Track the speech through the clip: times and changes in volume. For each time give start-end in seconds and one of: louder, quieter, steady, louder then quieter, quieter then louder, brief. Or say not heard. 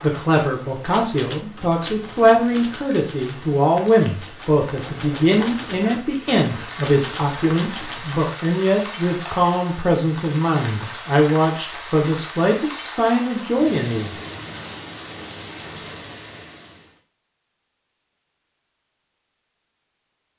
0.0-14.1 steady.